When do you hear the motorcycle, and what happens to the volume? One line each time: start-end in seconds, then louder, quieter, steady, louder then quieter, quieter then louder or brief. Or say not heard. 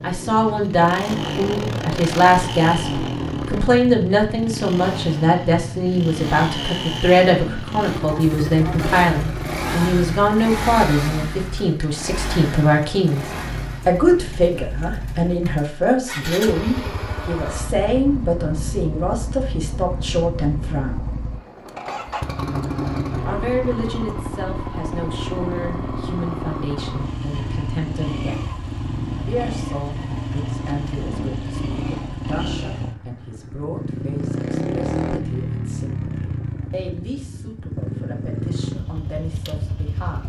0.0-40.2 steady.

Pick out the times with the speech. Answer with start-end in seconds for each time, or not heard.
0.0-13.2, 13.8-21.1, 23.2-28.4, 29.2-40.2.